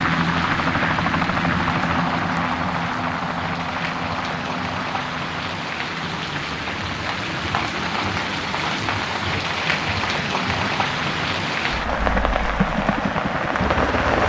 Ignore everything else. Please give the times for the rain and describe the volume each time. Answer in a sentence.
You can hear the rain from 0.0 to 14.2 s, getting louder.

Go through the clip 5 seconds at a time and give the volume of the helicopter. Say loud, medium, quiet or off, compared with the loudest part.
loud, medium, medium.